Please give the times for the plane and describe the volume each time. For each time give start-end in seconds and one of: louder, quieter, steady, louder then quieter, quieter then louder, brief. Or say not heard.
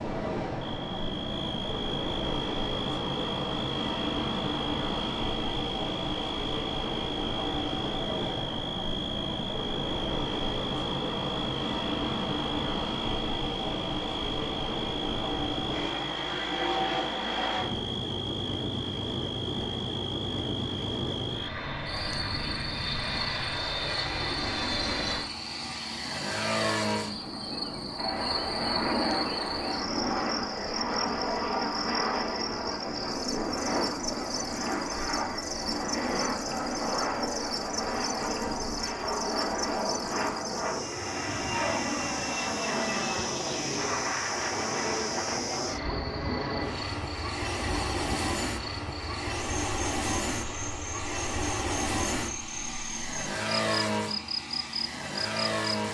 0.0-55.9 steady.